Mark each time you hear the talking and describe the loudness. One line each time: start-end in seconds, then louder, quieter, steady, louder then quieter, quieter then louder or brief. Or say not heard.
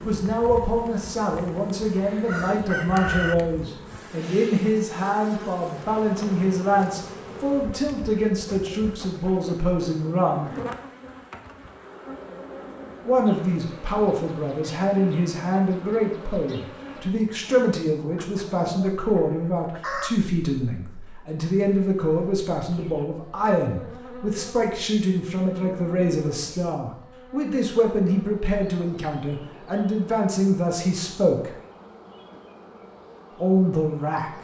0.1-10.5 steady
13.1-31.5 steady
33.4-34.3 brief.